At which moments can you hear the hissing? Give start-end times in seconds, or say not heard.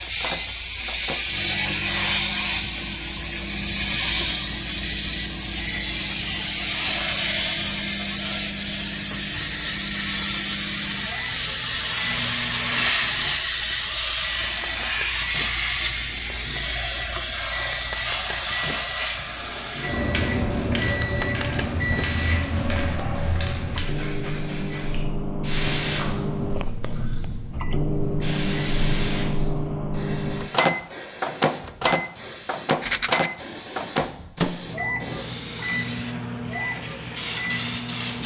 0.0-38.2.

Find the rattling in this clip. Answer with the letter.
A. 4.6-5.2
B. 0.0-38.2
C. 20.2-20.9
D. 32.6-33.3
D.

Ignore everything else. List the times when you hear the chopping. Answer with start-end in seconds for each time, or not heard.
not heard.